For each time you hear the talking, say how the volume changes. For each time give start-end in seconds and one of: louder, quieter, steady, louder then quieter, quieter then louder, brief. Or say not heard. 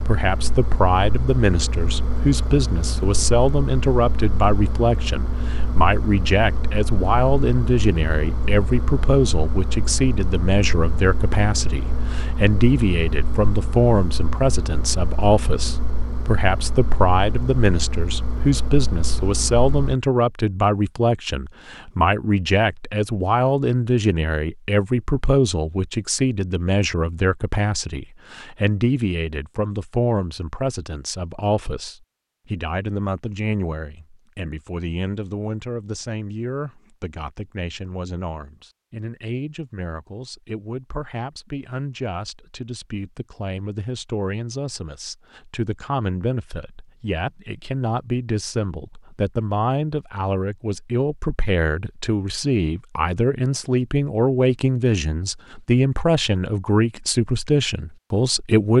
0.1-58.7 quieter then louder.